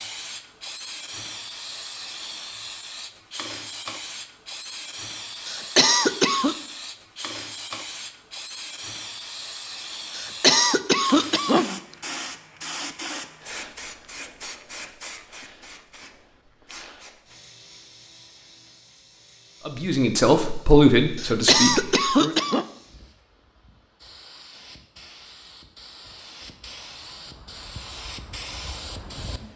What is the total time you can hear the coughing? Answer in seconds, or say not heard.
4 s.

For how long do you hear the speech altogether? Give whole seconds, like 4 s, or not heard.
3 s.